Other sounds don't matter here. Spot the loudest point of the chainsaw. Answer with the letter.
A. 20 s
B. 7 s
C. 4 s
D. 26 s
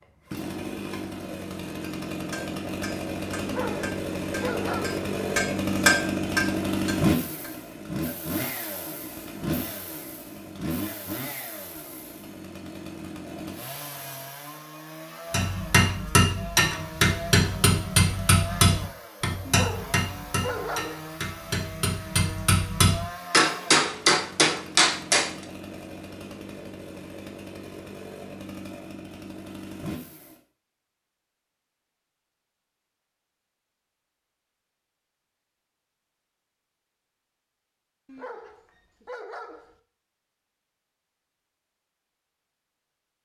B.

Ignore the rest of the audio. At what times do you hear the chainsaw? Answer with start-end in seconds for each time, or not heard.
0.0-30.4.